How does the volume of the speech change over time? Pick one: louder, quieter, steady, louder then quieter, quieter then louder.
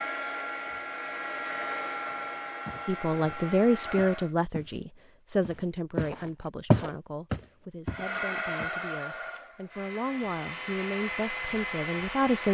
quieter then louder.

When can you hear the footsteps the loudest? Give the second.
7 s.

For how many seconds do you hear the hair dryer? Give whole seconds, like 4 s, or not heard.
9 s.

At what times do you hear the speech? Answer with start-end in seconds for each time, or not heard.
2.9-12.4.